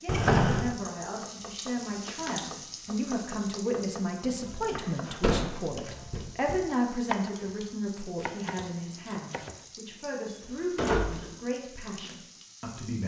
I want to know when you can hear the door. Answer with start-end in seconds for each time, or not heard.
0.1-0.8, 5.2-6.6, 10.2-11.3.